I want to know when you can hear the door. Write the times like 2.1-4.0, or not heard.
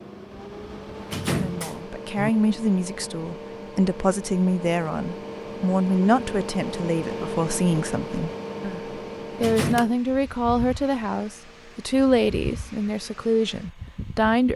1.1-2.3, 9.3-9.8.